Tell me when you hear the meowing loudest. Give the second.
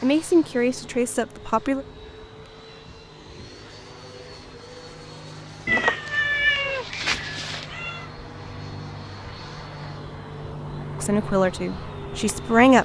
6 s.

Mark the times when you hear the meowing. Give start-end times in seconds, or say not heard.
5.7-8.1.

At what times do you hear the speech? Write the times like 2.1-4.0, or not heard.
0.0-1.9, 11.0-12.8.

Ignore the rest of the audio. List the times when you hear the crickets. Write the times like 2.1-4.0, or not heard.
not heard.